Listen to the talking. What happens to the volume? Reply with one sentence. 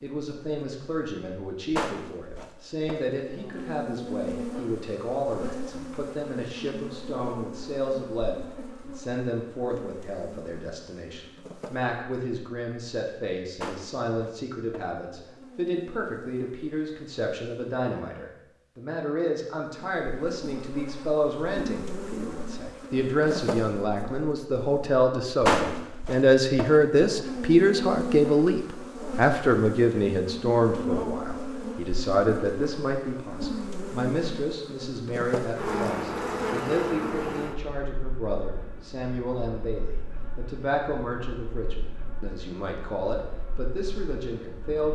The volume of the talking goes up, then down.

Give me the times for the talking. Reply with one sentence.
The talking can be heard from 0.0 to 44.9 s.